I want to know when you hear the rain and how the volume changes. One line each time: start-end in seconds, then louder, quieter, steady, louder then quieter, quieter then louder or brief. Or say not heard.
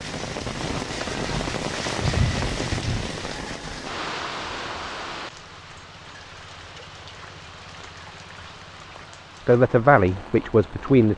0.0-11.1 quieter.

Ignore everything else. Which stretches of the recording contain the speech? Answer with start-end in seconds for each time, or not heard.
9.4-11.1.